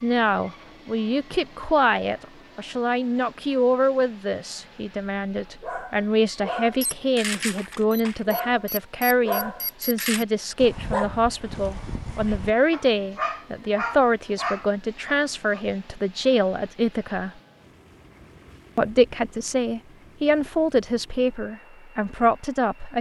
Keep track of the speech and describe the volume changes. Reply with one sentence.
The loudness of the speech stays about the same.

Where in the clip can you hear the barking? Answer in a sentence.
You can hear the barking from 5.6 to 15.6 s.